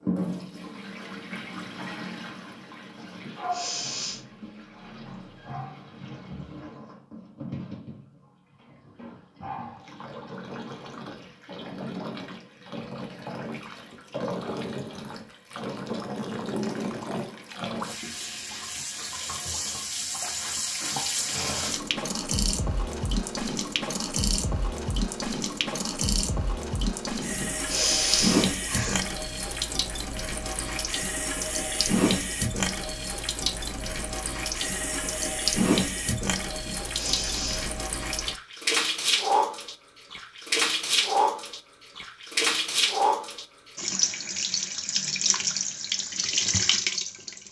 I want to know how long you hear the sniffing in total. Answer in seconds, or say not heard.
4 s.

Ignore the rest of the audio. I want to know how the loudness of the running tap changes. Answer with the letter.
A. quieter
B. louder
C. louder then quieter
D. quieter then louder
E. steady
B.